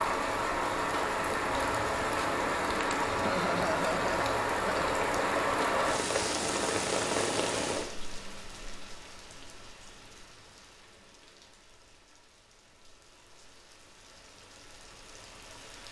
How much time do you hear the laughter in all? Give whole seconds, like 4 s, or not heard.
2 s.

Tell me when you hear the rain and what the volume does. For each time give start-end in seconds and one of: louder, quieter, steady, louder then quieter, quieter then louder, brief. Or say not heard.
0.0-15.8 quieter.